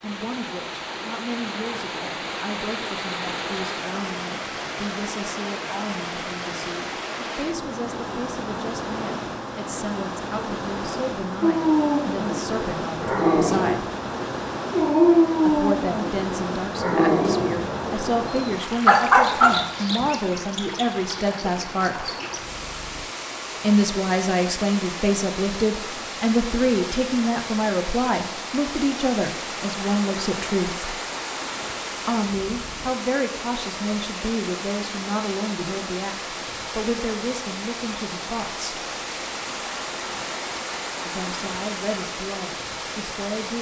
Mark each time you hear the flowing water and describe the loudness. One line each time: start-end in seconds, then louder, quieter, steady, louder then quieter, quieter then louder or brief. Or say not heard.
0.0-43.5 steady.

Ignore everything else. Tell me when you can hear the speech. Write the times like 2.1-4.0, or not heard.
0.0-13.9, 15.4-22.1, 23.6-30.9, 32.0-38.8, 41.0-43.5.